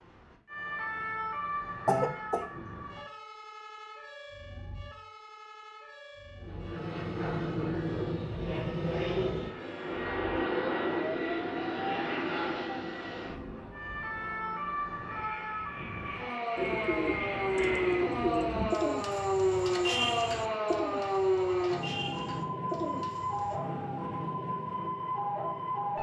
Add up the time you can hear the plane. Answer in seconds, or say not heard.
12 s.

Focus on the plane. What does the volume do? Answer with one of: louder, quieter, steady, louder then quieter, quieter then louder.
quieter then louder.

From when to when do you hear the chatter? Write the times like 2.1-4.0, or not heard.
not heard.